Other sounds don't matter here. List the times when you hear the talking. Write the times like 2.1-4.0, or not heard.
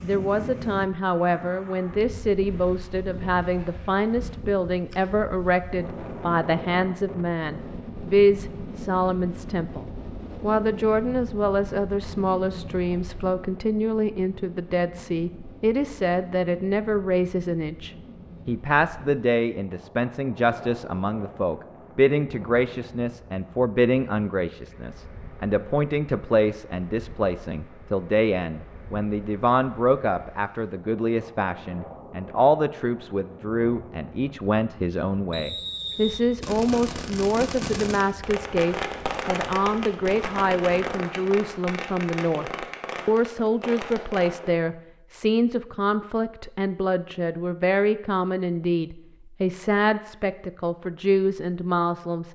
0.0-52.3.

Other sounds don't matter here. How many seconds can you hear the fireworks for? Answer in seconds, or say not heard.
8 s.